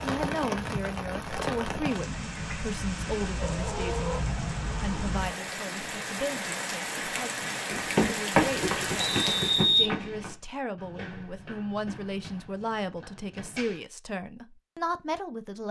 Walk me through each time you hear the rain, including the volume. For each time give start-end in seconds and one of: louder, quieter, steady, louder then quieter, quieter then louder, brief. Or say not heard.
0.0-9.8 steady.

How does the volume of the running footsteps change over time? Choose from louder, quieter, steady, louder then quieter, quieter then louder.
quieter.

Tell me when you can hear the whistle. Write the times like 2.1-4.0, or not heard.
9.0-10.4.